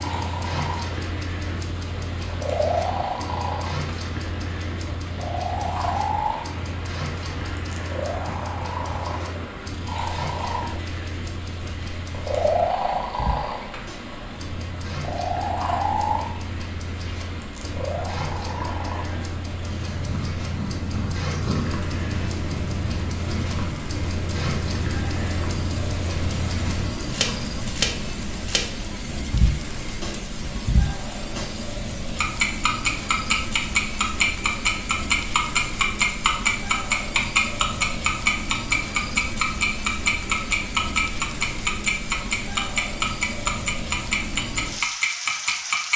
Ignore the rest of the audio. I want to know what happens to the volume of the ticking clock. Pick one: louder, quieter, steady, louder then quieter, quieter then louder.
louder.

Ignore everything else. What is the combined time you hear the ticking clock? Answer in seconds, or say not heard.
45 s.